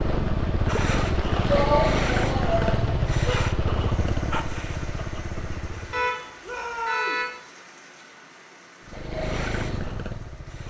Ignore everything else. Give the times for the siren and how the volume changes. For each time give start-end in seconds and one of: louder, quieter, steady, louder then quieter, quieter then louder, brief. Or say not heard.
not heard.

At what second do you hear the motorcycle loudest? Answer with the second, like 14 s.
2 s.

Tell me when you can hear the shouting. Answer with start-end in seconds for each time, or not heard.
1.4-3.0, 6.4-7.2.